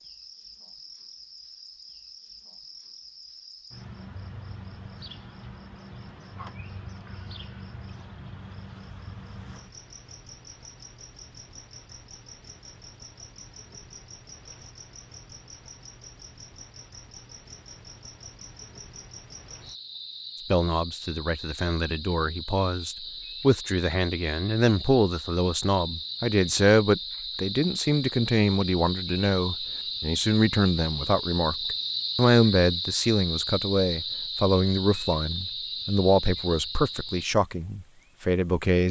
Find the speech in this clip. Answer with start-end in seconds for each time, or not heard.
20.5-38.8.